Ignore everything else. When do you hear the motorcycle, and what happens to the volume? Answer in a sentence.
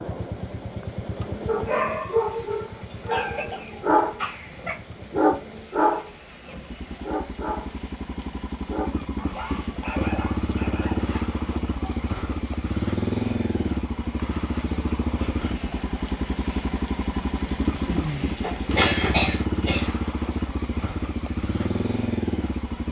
The motorcycle can be heard from 0.0 to 22.8 s, getting louder.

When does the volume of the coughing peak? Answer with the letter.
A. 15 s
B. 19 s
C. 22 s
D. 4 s
B.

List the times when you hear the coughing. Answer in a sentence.
The coughing can be heard from 3.0 to 4.8 s and from 17.9 to 19.9 s.